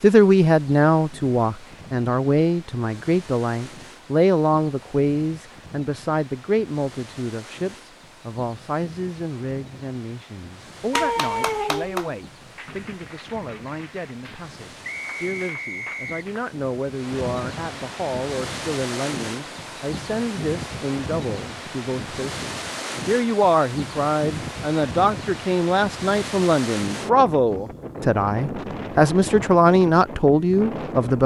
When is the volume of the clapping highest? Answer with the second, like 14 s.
11 s.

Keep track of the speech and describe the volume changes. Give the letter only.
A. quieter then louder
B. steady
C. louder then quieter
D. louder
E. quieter
A.